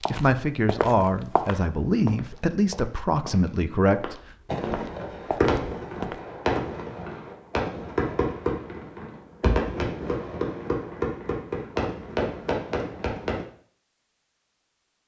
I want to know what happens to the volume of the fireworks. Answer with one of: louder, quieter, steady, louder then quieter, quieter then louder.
steady.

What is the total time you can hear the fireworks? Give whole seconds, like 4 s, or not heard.
9 s.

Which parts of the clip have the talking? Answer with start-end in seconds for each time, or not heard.
0.1-4.2.